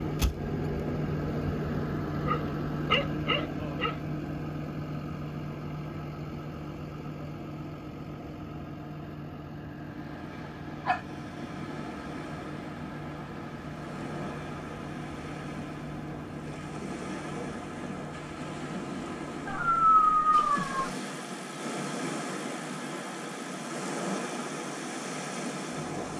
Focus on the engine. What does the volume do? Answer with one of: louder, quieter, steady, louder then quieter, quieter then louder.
quieter.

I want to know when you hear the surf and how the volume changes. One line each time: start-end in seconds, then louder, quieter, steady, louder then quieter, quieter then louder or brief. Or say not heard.
9.8-26.1 louder.